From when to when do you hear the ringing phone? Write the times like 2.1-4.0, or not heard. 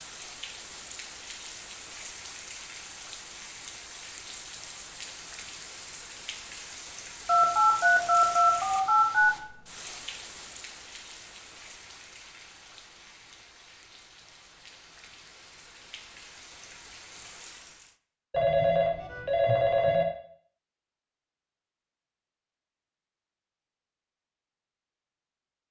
7.2-9.4, 18.3-20.1.